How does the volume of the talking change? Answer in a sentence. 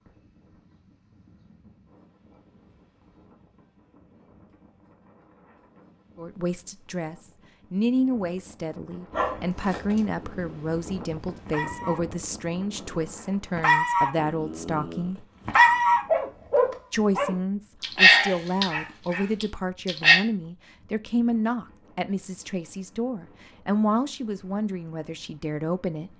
The volume of the talking stays about the same.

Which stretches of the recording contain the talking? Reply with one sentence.
You can hear the talking from 6.2 to 15.2 s and from 16.9 to 26.1 s.